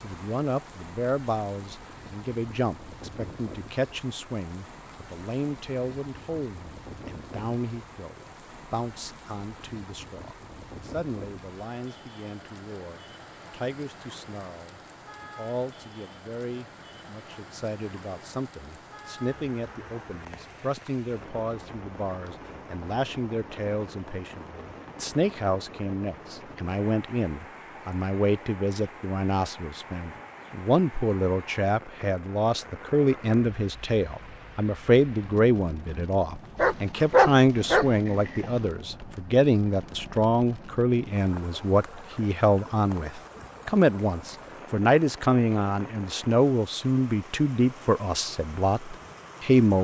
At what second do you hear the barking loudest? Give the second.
37 s.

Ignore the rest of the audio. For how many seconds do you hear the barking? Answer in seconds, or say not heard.
2 s.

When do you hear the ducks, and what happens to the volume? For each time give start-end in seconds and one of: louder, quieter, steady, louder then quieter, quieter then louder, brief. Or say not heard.
not heard.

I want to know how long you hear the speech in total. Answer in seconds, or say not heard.
50 s.